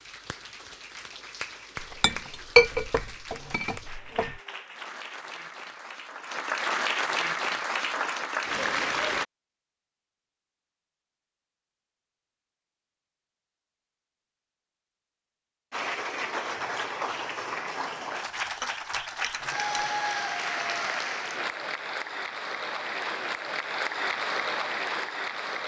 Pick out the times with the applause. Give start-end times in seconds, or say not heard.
0.0-9.2, 15.7-25.6.